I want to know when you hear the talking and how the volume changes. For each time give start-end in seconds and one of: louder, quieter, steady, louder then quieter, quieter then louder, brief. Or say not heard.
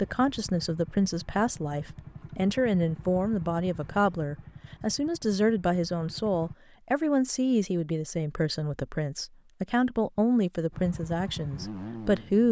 0.0-12.4 steady.